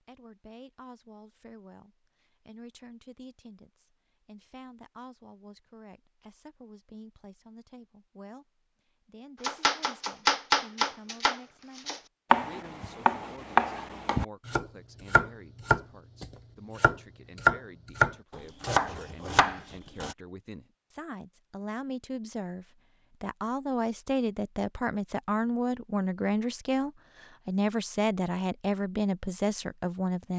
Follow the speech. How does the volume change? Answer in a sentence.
The volume of the speech goes up.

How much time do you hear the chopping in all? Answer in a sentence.
The chopping can be heard for 11 seconds in total.